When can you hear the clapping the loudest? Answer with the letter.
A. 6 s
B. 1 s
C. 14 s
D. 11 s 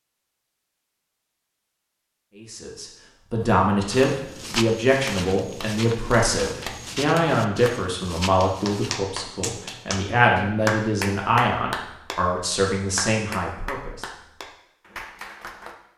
D.